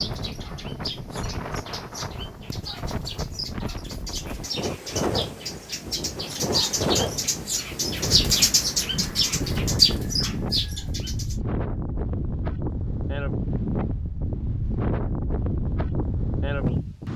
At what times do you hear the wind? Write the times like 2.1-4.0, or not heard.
0.0-17.1.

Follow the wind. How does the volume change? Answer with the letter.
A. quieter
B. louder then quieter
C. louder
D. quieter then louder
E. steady
C.